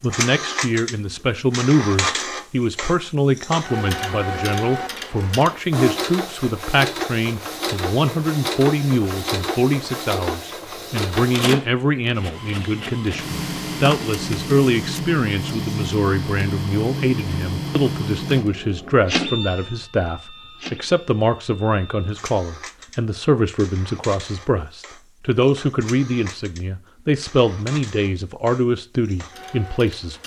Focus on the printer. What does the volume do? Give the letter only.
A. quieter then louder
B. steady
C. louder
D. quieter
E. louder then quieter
D.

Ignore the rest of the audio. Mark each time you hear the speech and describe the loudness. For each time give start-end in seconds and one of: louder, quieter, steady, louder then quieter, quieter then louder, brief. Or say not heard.
0.0-30.2 steady.